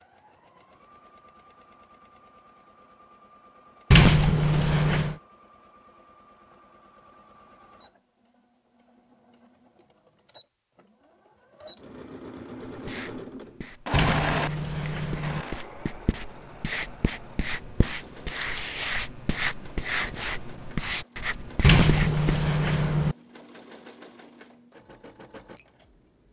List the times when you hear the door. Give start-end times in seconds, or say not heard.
3.9-5.2, 13.9-15.4, 21.6-23.1.